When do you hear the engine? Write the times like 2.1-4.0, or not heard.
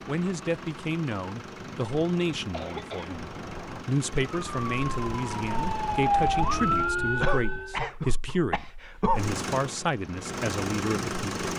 0.0-7.0, 9.2-11.5.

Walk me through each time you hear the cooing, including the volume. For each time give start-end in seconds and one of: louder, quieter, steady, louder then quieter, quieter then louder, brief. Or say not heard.
not heard.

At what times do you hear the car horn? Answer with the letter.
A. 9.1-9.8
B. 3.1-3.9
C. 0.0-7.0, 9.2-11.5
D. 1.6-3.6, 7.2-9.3
B.